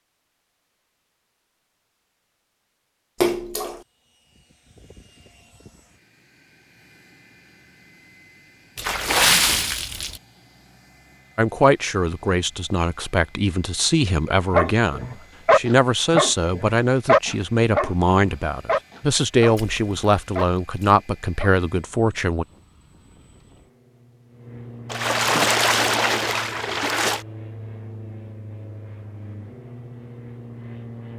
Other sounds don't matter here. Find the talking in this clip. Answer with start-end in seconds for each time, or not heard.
11.3-22.4.